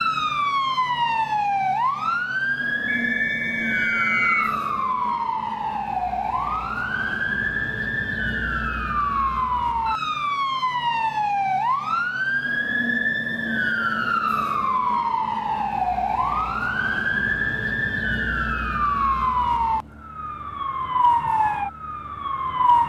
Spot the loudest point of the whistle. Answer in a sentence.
The volume of the whistle peaks at 4 seconds.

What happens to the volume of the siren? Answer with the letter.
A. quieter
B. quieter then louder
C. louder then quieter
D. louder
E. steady
E.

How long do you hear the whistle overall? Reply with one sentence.
The whistle can be heard for 2 seconds in total.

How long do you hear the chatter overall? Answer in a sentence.
The chatter can't be heard in this clip.